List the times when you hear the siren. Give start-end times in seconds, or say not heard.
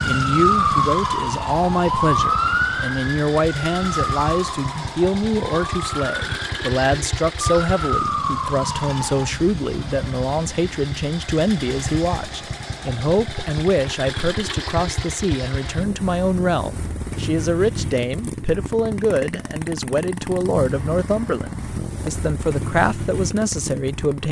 0.0-9.3.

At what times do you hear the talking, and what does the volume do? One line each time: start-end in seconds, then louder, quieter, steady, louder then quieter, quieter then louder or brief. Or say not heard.
0.0-24.2 steady.